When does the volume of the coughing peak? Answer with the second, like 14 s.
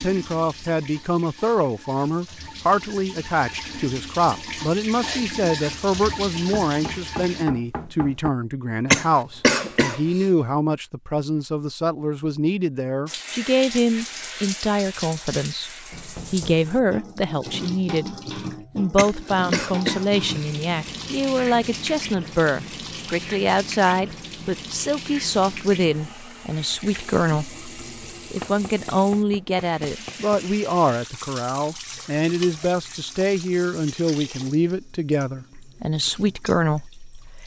9 s.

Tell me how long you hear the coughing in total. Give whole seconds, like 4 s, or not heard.
3 s.